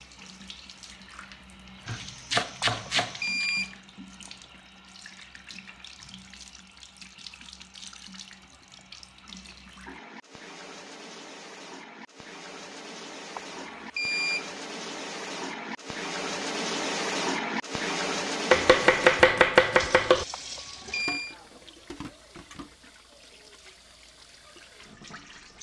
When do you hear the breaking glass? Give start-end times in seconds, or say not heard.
not heard.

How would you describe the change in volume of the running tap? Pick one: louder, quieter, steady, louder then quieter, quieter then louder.
louder then quieter.